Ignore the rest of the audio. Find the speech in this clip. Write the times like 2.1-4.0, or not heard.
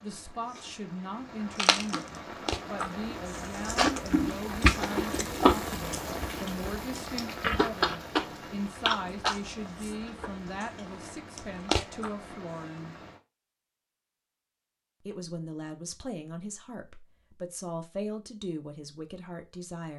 0.0-12.9, 15.0-19.9.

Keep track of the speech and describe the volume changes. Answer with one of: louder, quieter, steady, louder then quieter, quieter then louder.
steady.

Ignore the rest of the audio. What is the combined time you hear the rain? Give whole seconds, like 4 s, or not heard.
13 s.